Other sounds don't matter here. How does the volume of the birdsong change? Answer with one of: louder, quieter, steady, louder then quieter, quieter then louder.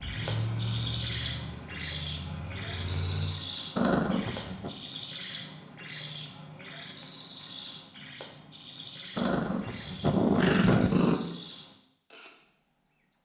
quieter.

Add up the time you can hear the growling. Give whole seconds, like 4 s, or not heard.
3 s.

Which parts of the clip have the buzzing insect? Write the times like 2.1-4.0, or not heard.
not heard.